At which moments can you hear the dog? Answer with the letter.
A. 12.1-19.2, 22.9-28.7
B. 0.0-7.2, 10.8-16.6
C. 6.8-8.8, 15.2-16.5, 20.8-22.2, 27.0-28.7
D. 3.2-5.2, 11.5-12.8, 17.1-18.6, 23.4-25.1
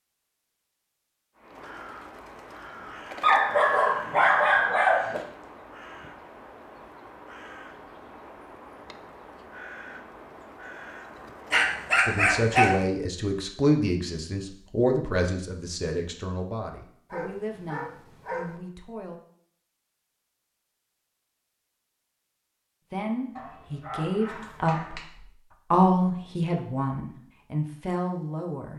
D.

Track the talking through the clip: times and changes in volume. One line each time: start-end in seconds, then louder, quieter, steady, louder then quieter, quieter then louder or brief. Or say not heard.
12.1-19.2 quieter
22.9-28.7 louder then quieter.